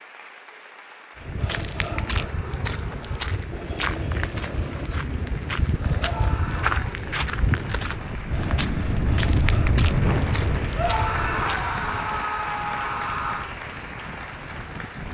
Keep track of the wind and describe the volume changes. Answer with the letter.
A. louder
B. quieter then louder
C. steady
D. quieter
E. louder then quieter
E.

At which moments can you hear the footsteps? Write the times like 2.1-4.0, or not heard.
1.1-11.7.